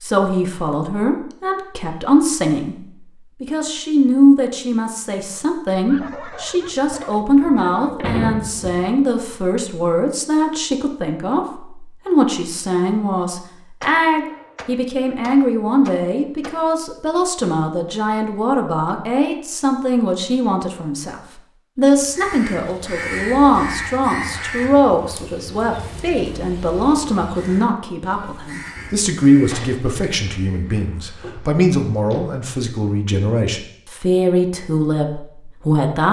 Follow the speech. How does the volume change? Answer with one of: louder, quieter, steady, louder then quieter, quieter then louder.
steady.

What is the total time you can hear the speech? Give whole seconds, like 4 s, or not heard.
36 s.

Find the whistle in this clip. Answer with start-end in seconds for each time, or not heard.
not heard.